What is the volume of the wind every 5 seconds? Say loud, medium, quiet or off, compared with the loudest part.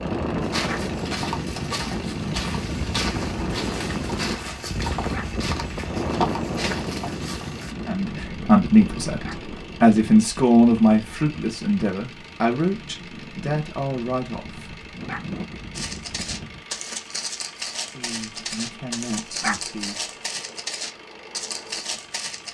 loud, loud, quiet, medium, off.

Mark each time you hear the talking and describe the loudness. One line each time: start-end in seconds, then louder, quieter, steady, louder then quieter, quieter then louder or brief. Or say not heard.
7.8-14.7 quieter
17.9-20.0 brief.